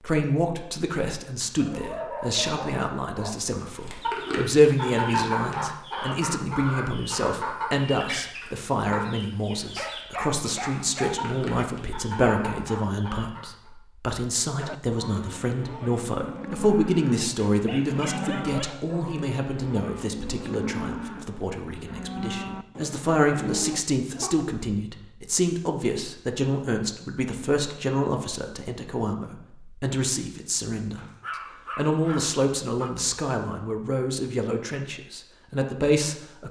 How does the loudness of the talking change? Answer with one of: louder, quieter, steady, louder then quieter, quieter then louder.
steady.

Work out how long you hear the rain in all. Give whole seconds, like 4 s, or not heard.
not heard.